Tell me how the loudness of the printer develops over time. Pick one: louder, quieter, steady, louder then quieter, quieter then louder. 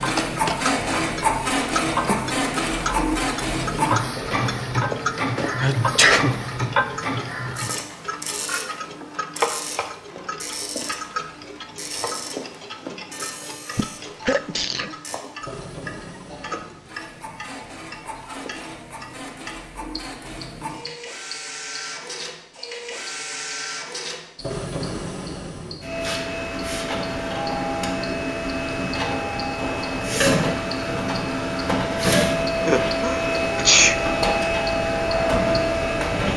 quieter then louder.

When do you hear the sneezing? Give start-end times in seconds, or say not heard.
5.3-6.3, 13.8-14.9, 32.6-34.0.